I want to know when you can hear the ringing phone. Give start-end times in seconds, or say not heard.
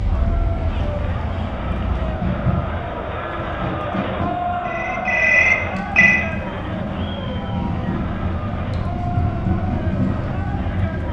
4.7-6.2.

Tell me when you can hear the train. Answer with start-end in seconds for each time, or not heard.
0.0-11.0.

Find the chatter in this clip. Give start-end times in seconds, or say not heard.
0.0-11.0.